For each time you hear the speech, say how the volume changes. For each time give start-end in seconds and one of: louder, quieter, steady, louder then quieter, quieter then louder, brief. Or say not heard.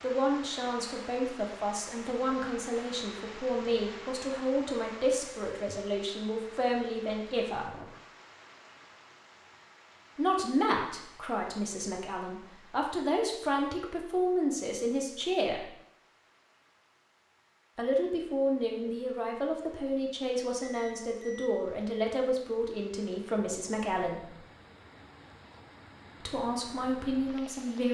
0.0-7.8 steady
10.2-15.7 quieter then louder
17.8-24.3 steady
26.2-27.8 brief.